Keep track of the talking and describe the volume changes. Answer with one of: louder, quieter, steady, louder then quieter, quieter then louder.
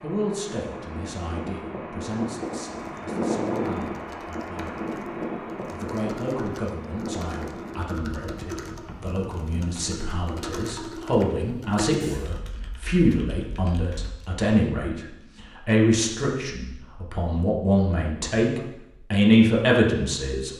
louder.